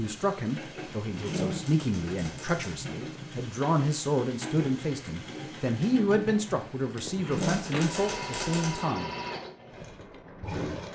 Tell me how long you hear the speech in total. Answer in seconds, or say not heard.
9 s.